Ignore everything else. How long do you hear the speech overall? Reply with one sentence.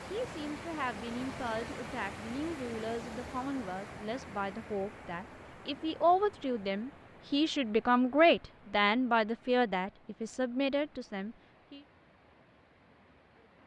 You can hear the speech for 12 seconds altogether.